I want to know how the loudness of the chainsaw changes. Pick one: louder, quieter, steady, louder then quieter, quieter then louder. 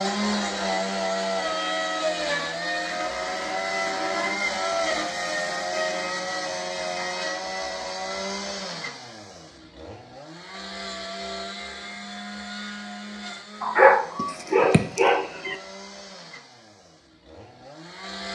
quieter.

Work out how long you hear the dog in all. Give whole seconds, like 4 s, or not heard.
2 s.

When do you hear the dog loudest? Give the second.
14 s.